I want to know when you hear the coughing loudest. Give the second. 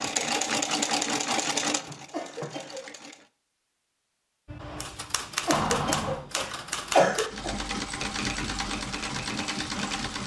7 s.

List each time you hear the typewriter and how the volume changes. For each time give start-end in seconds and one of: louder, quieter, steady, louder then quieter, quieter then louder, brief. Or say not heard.
4.5-10.1 quieter.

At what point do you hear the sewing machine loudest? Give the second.
1 s.